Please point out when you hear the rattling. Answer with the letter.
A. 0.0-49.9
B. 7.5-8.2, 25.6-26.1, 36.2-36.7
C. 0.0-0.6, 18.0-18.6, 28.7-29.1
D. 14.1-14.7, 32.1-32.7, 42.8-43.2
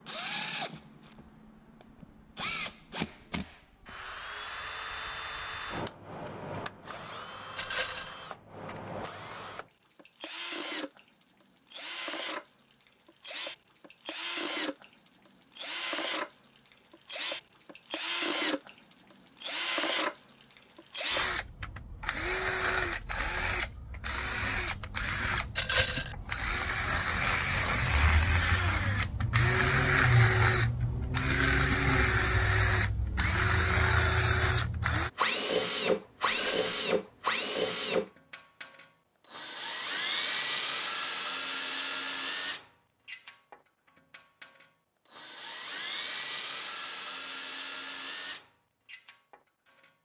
B.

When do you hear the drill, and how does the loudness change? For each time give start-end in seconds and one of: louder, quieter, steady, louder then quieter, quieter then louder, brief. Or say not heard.
0.0-49.9 louder then quieter.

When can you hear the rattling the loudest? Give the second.
26 s.